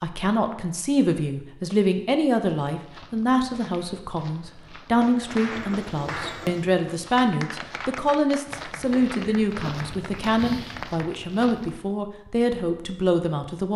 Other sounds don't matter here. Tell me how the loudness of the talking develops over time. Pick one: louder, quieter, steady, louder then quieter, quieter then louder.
steady.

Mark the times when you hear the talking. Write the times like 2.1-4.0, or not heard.
0.0-13.7.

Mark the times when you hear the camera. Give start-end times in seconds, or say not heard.
not heard.